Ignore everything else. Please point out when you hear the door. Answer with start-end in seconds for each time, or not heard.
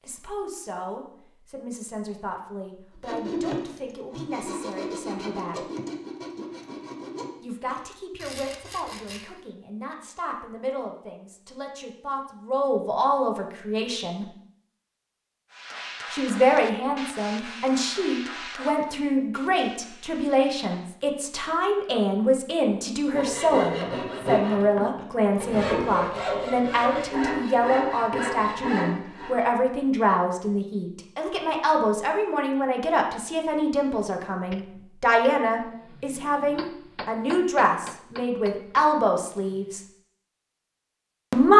not heard.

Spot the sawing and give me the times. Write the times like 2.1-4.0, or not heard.
3.0-9.4, 23.1-29.5.